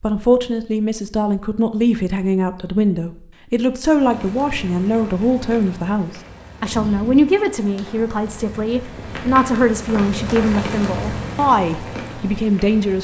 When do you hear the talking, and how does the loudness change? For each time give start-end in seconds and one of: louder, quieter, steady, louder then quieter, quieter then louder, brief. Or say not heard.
0.0-12.9 steady.